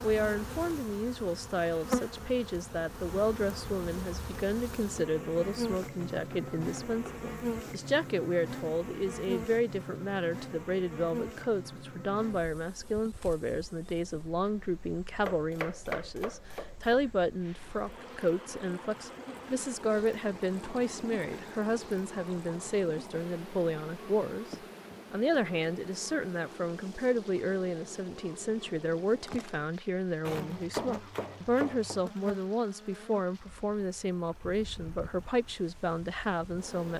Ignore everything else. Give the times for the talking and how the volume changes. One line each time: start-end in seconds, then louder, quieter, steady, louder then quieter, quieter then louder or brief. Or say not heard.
0.0-36.9 steady.